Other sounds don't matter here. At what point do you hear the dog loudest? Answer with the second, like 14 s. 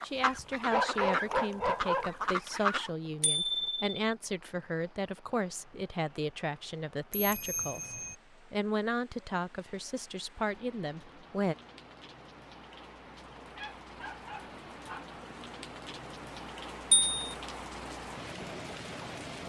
1 s.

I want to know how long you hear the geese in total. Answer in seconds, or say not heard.
3 s.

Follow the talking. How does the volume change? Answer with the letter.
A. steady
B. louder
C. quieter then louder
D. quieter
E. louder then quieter
A.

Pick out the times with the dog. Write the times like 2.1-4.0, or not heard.
0.1-2.1, 13.6-15.1.